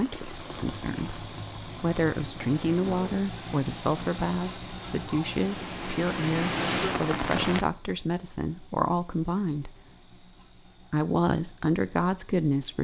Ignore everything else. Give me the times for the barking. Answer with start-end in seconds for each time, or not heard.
not heard.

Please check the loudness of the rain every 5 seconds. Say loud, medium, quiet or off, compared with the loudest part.
quiet, loud, off.